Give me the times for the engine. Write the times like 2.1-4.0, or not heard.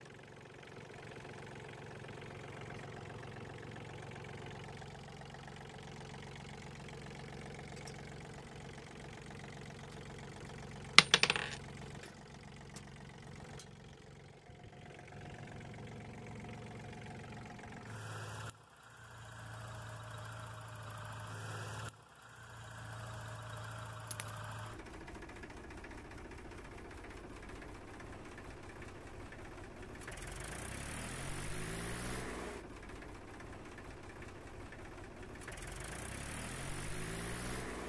0.0-37.8.